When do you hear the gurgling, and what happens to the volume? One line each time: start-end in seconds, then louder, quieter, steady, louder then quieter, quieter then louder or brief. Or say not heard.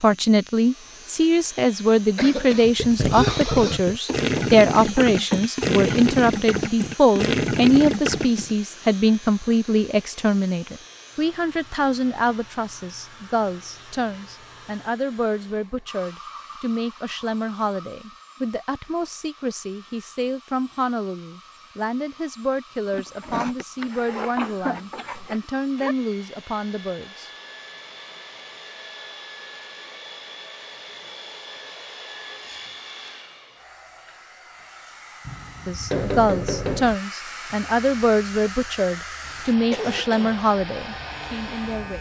2.6-8.6 steady.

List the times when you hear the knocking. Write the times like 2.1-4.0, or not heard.
4.0-6.0, 24.4-25.9, 35.2-37.0.